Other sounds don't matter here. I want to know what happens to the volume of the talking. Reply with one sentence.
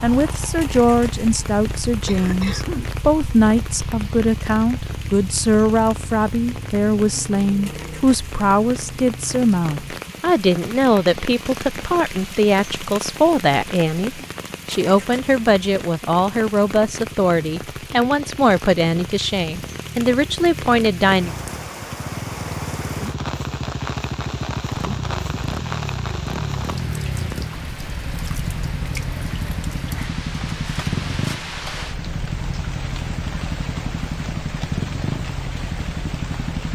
The volume of the talking stays about the same.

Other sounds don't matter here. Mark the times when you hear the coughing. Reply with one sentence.
You can hear the coughing from 2.0 to 3.0 s.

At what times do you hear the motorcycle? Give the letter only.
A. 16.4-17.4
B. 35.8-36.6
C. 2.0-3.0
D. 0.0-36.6
D.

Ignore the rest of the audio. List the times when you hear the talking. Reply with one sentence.
You can hear the talking from 0.0 to 21.3 s.